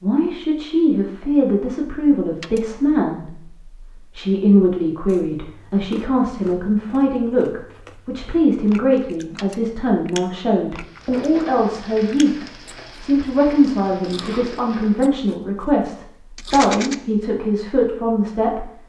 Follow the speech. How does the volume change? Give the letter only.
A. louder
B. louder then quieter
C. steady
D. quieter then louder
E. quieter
C.